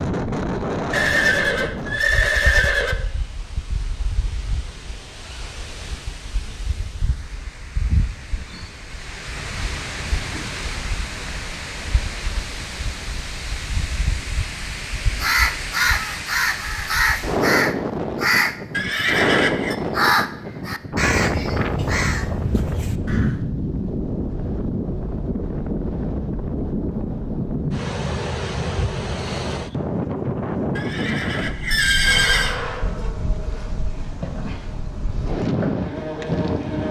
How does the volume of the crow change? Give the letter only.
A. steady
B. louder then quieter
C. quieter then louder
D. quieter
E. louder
D.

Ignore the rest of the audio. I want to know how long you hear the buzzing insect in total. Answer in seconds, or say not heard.
5 s.